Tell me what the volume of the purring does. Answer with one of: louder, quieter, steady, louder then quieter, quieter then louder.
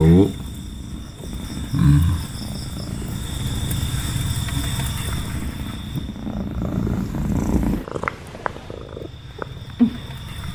louder.